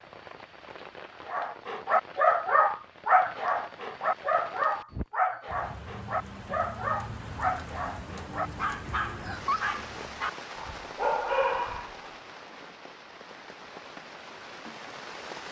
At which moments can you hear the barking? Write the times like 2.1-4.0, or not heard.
1.2-12.1.